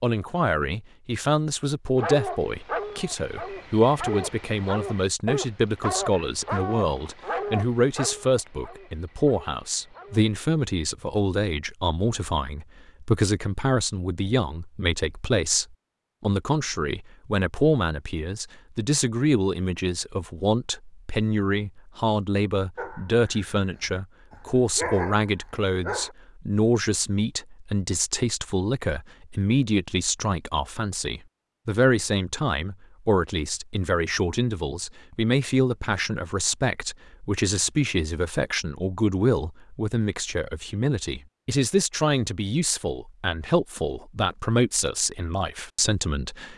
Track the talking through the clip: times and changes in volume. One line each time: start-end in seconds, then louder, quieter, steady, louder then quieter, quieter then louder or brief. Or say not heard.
0.0-46.5 steady.